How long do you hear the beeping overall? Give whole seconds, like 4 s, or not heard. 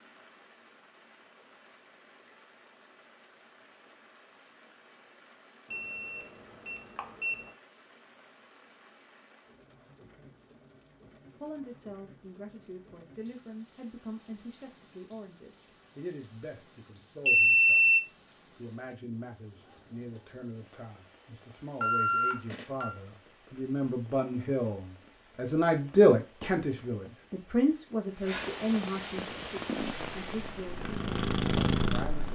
4 s.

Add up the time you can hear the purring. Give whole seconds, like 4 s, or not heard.
3 s.